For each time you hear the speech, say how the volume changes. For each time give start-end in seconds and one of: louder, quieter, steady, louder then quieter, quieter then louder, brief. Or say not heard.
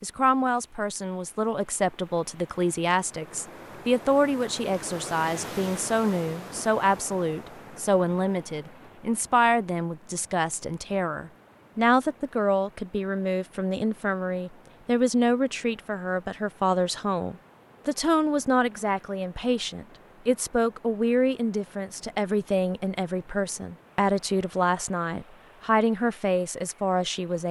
0.0-27.4 steady.